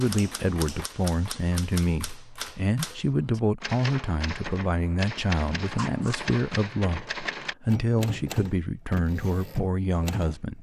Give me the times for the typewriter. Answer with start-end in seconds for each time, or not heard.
0.0-10.4.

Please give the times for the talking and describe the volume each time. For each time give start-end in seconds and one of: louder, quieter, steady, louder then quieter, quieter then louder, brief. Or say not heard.
0.0-10.5 steady.